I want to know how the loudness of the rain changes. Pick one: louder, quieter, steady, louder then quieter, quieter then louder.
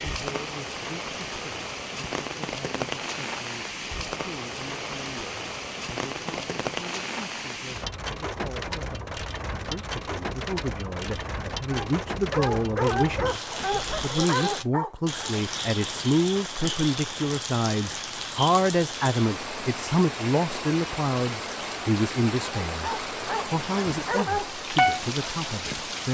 steady.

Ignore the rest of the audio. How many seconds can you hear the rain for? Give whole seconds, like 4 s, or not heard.
26 s.